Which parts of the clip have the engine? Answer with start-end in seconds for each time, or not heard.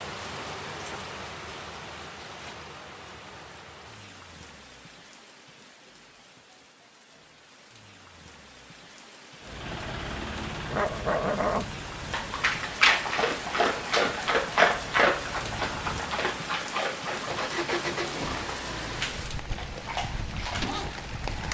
9.4-21.4.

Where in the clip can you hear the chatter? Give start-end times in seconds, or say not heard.
not heard.